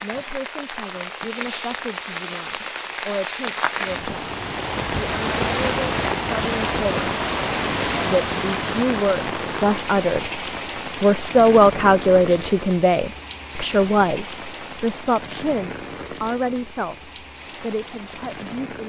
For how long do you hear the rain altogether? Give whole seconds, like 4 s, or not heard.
19 s.